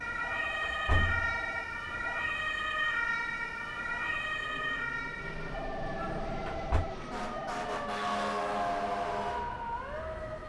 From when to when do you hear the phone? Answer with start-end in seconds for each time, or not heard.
0.2-2.2, 5.5-7.5.